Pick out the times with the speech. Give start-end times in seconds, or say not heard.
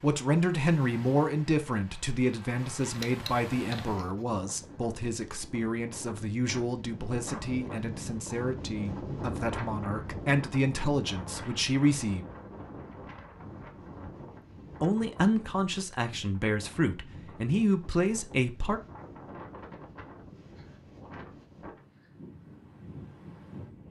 0.0-12.2, 14.8-18.8.